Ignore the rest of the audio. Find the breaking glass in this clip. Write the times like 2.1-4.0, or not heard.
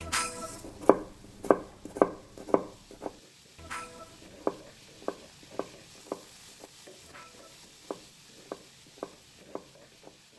not heard.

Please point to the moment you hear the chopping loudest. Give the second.
2 s.